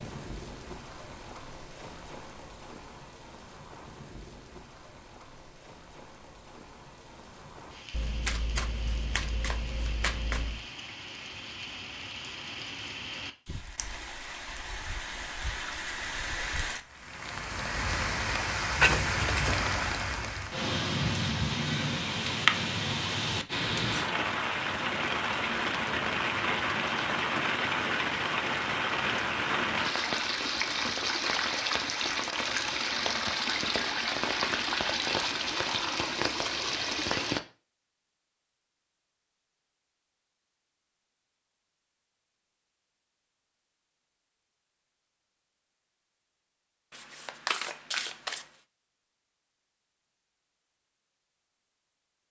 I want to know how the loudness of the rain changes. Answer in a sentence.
The loudness of the rain goes up.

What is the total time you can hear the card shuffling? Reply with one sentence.
You can hear the card shuffling for 5 seconds altogether.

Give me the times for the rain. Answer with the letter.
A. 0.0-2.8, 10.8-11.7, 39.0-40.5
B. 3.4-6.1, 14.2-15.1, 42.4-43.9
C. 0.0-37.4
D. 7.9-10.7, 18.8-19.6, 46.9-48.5
C.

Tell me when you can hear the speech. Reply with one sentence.
You can't hear the speech here.